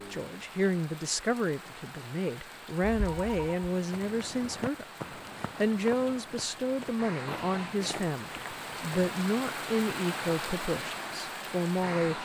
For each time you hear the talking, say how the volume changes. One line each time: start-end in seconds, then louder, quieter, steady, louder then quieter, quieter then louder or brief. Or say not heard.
0.1-12.2 steady.